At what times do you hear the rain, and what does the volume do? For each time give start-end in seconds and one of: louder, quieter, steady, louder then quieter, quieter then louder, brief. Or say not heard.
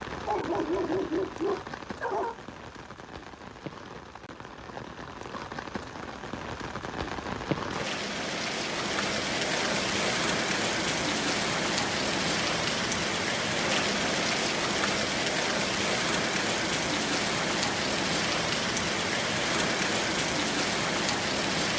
0.0-21.7 louder.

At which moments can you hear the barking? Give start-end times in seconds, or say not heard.
0.1-2.4.